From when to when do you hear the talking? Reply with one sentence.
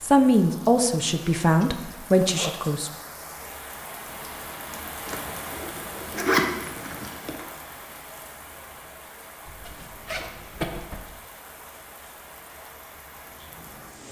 You can hear the talking from 0.0 to 2.9 s.